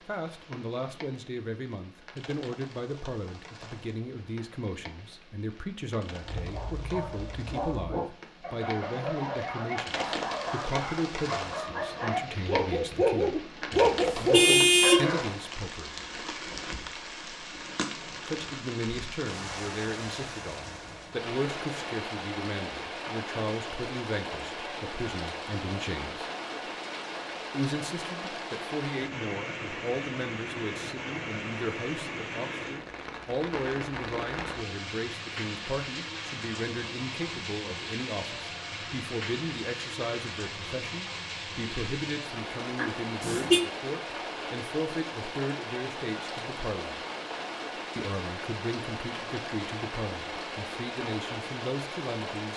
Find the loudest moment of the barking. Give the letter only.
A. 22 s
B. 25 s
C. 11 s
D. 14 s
D.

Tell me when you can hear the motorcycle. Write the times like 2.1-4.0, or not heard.
not heard.